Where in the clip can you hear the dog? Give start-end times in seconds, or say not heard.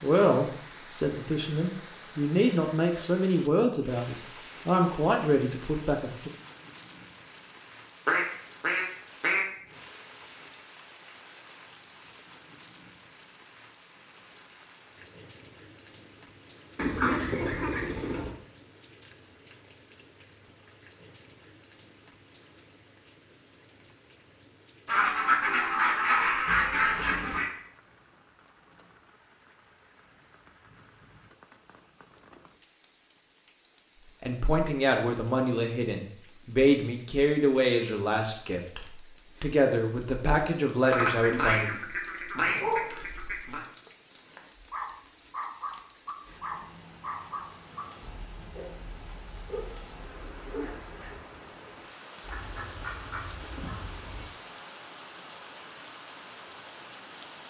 42.4-51.2.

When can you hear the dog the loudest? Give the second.
43 s.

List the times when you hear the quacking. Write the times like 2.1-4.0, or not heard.
8.1-9.4, 16.8-18.4, 24.9-27.5, 40.8-43.6, 52.2-54.2.